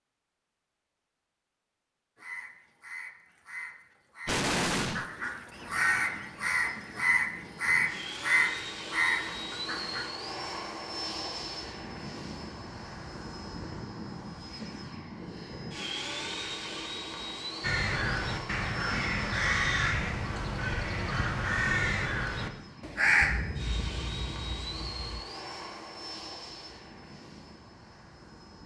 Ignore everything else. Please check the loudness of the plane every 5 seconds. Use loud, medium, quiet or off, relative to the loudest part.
off, loud, loud, loud, loud, medium.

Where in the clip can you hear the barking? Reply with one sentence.
The barking can't be heard in this clip.